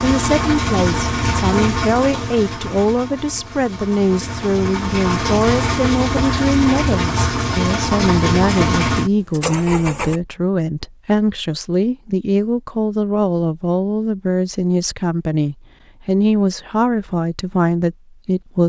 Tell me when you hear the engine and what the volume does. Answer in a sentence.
You can hear the engine from 0.0 to 10.2 s, getting quieter then louder.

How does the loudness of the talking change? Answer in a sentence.
The loudness of the talking stays about the same.